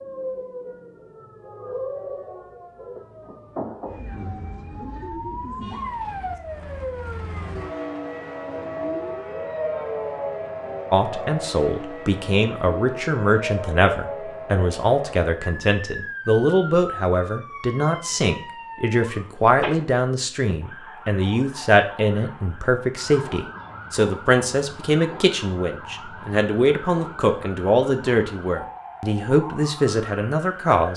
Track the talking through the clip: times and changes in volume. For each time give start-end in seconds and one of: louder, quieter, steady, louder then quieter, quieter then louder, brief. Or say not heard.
10.9-30.9 steady.